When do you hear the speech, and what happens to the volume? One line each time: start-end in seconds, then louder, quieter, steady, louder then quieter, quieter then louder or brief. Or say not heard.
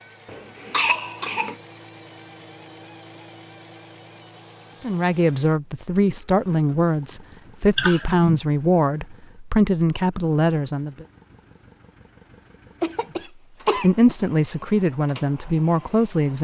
4.8-11.1 steady
13.8-16.3 brief.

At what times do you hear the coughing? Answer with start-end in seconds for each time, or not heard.
0.2-1.6, 7.8-8.3, 12.8-13.9.